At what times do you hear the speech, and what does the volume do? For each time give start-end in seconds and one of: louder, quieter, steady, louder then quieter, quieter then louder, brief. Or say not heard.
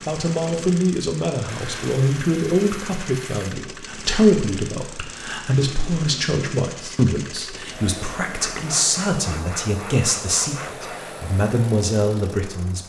0.1-12.8 steady.